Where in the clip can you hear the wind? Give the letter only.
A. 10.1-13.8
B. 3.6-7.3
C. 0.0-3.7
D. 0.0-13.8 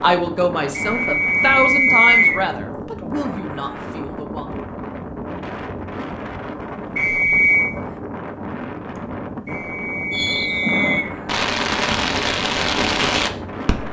D.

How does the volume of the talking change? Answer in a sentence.
The volume of the talking goes down.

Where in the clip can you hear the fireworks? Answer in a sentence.
The fireworks can be heard from 10.1 to 13.8 s.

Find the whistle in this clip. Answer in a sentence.
The whistle can be heard from 0.8 to 2.4 s, from 7.0 to 7.7 s and from 9.4 to 11.1 s.